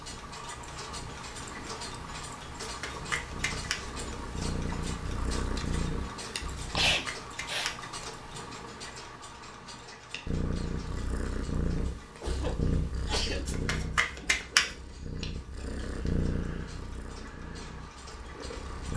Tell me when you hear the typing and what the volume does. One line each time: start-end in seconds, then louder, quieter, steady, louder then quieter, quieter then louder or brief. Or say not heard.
not heard.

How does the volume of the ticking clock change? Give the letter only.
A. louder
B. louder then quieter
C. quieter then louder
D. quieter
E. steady
D.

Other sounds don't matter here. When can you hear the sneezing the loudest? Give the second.
7 s.